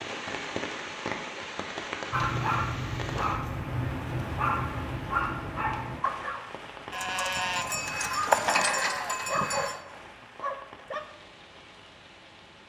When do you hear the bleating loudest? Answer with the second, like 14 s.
8 s.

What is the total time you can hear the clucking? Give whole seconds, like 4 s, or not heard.
not heard.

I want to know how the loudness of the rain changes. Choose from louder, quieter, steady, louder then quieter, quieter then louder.
quieter.